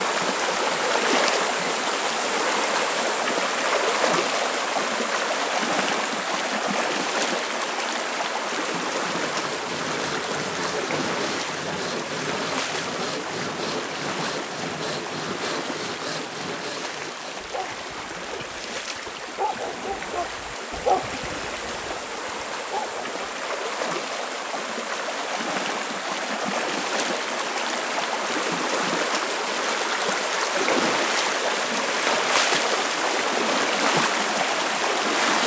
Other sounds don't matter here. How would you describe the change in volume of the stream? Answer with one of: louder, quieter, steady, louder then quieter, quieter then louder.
quieter then louder.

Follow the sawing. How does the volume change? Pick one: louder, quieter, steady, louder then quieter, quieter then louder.
steady.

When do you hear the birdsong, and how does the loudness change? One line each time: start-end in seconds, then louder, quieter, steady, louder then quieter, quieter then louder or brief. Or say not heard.
not heard.